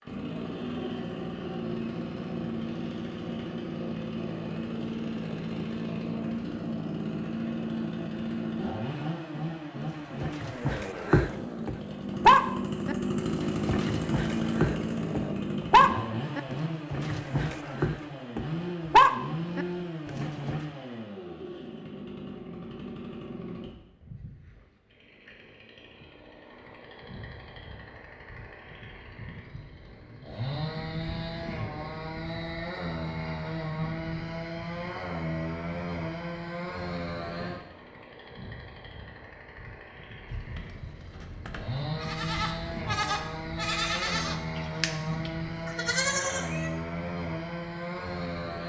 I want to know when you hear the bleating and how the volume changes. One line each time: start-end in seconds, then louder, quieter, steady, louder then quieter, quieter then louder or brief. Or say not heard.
40.2-46.7 louder.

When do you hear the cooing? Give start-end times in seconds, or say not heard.
not heard.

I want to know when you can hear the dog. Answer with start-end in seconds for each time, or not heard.
10.2-20.6.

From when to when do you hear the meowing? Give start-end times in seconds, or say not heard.
not heard.